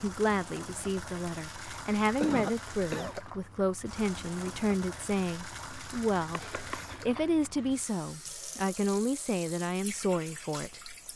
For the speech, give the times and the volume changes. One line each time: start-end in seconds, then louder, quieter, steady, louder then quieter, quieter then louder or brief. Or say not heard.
0.0-11.1 steady.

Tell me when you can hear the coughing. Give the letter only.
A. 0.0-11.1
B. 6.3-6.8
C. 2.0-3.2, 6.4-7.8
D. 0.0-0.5
C.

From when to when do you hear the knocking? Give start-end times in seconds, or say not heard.
6.3-6.8.